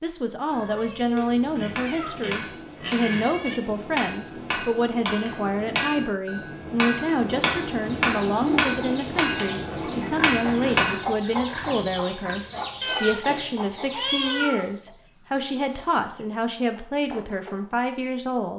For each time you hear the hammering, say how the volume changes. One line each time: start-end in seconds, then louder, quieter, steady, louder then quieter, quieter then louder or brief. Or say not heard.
1.1-11.1 louder.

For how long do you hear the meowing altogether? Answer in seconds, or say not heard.
5 s.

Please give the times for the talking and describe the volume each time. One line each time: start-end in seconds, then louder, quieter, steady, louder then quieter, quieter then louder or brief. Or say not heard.
0.0-18.5 steady.